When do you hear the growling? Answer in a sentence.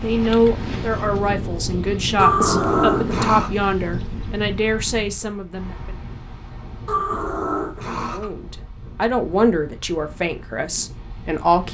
The growling can be heard from 2.1 to 3.5 s and from 6.8 to 8.3 s.